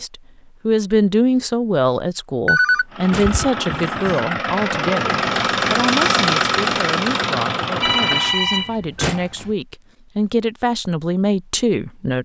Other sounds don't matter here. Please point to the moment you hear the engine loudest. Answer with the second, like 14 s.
6 s.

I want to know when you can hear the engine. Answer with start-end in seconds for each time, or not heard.
2.9-8.4.